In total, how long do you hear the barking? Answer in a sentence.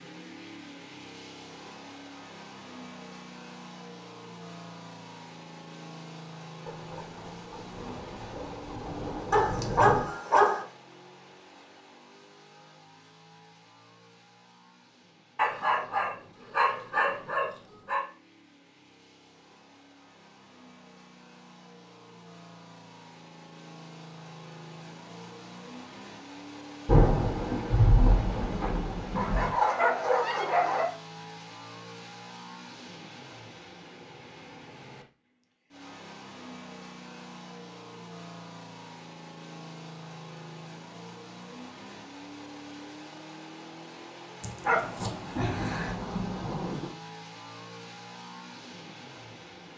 The barking can be heard for 7 seconds in total.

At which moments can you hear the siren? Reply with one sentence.
You can't hear the siren here.